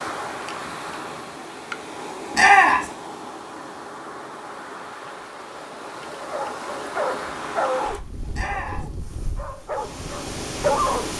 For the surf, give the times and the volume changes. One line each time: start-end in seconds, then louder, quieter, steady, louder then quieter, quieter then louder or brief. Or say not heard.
0.0-11.1 steady.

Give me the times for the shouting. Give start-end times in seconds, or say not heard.
2.4-2.9, 8.3-8.8.